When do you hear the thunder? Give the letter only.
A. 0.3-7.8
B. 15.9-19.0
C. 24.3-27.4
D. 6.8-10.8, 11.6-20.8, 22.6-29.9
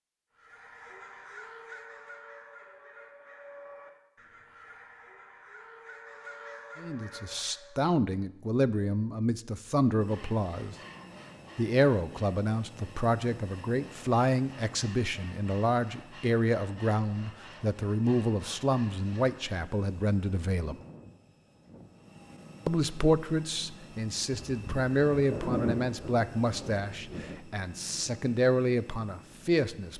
C.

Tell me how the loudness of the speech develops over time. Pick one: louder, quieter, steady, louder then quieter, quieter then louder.
steady.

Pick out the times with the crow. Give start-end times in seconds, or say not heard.
0.3-7.8.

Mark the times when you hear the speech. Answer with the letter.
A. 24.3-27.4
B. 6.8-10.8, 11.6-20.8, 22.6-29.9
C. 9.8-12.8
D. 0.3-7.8
B.